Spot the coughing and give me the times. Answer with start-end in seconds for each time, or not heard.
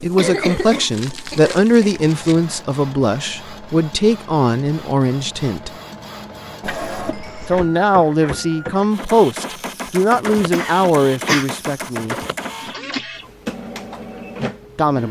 0.1-1.9, 6.6-7.7, 10.5-11.4.